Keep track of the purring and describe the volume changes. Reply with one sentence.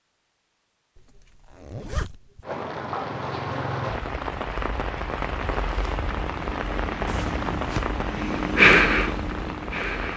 The volume of the purring goes up, then down.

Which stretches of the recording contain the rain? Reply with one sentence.
You can hear the rain from 2.4 to 10.1 s.